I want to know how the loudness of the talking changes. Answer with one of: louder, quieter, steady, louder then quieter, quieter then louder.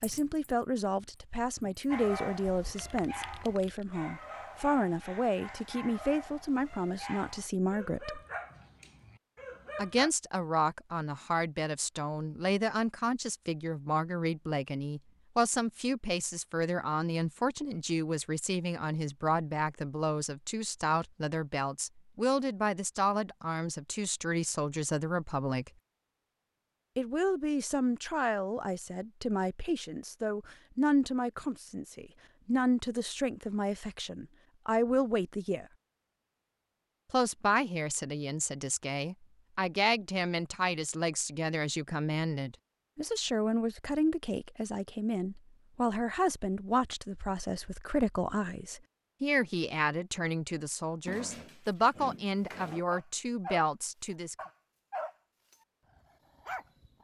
steady.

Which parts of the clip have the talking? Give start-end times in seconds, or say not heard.
0.0-8.2, 9.8-25.7, 26.9-35.6, 37.1-54.4.